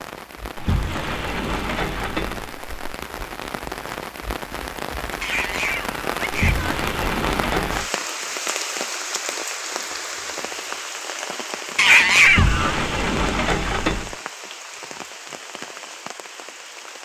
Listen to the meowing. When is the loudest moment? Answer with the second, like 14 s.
12 s.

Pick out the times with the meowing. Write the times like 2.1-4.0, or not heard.
5.2-6.7, 11.8-12.8.